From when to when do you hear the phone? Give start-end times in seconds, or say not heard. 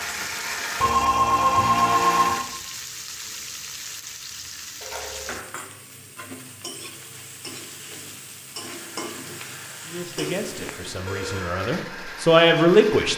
0.8-2.4, 4.8-5.4, 10.2-11.6.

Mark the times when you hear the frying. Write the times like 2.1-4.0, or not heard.
0.0-11.1.